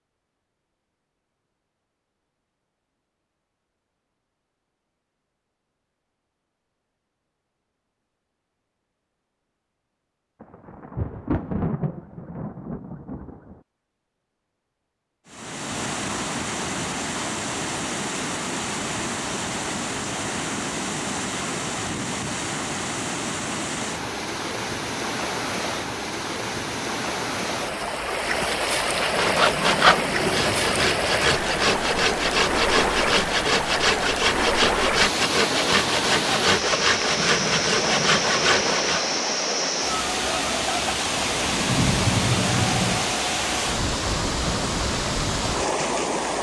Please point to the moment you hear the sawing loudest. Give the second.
30 s.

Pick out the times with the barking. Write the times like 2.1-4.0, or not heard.
not heard.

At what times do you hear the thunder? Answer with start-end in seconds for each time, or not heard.
10.4-13.6, 41.1-43.1.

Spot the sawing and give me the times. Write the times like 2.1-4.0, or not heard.
28.9-39.1.